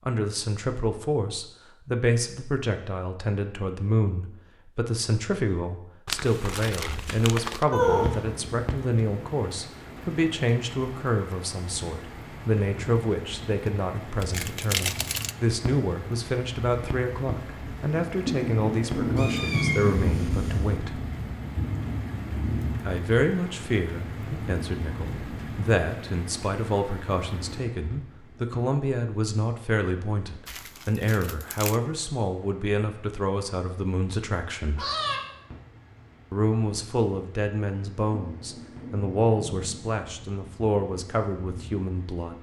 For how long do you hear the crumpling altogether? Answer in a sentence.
The crumpling can be heard for 4 seconds in total.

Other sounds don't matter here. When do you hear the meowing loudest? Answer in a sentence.
The loudest moment of the meowing is at 8 seconds.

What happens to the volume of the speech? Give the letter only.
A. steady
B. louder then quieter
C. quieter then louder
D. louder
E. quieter
A.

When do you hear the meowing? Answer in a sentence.
The meowing can be heard from 7.7 to 8.4 s, from 19.1 to 20.8 s and from 34.8 to 35.2 s.